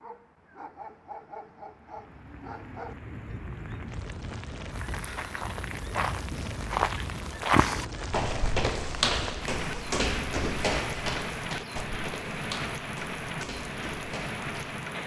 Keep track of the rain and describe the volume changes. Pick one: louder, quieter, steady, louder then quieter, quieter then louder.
louder.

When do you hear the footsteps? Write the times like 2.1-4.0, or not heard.
4.8-14.8.